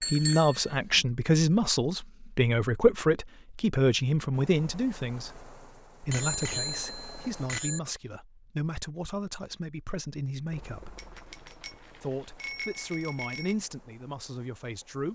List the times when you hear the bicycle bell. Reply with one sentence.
The bicycle bell can be heard from 0.0 to 1.0 s, from 6.1 to 7.8 s and from 10.9 to 13.6 s.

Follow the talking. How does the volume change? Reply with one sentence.
The volume of the talking goes down.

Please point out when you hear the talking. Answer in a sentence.
You can hear the talking from 0.0 to 5.4 s, from 6.0 to 10.9 s and from 12.0 to 15.1 s.